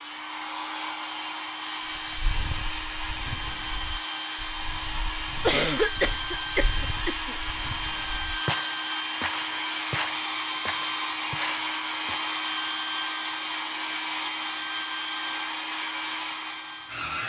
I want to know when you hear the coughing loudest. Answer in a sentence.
The volume of the coughing peaks at 6 seconds.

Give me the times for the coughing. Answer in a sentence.
You can hear the coughing from 5.4 to 7.3 s.